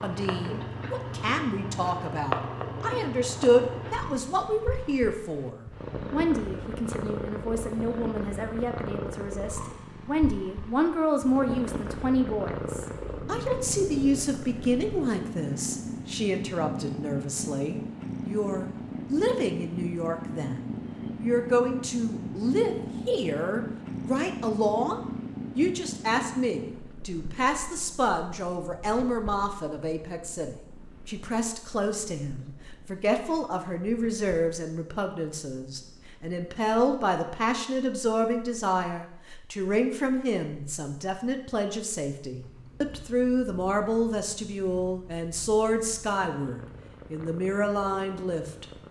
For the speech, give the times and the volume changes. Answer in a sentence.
You can hear the speech from 0.0 to 48.6 s, at a steady volume.